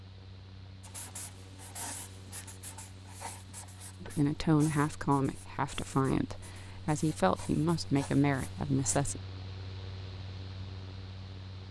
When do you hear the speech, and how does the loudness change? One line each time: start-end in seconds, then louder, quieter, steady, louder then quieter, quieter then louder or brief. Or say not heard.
4.0-9.2 quieter then louder.